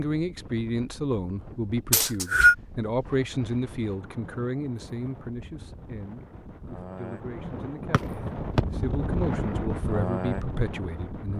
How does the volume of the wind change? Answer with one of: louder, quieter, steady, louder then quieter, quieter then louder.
louder.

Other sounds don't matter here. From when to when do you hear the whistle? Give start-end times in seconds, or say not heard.
1.9-2.5, 7.9-8.7.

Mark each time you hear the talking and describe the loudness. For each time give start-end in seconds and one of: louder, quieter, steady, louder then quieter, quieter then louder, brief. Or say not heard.
0.0-11.3 quieter then louder.